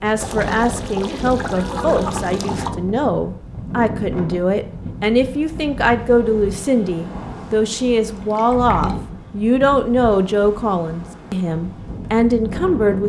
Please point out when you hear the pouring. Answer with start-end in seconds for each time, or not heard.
0.1-2.7, 8.2-9.0.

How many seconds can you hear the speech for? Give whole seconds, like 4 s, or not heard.
13 s.